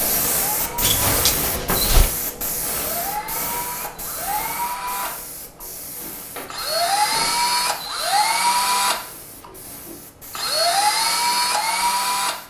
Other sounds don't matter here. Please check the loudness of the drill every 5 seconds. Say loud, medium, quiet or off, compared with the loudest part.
medium, loud, loud.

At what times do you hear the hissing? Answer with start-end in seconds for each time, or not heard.
0.0-12.4.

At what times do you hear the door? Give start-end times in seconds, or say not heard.
0.8-2.2, 6.3-7.5.